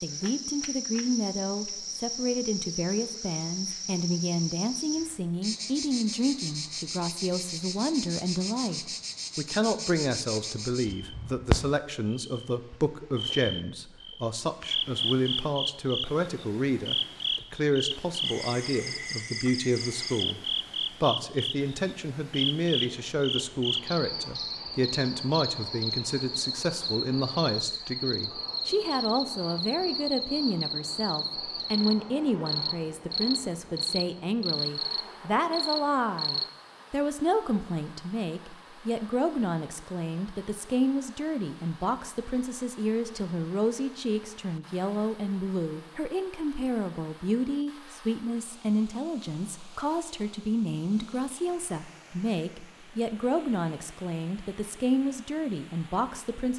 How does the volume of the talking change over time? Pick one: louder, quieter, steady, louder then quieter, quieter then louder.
steady.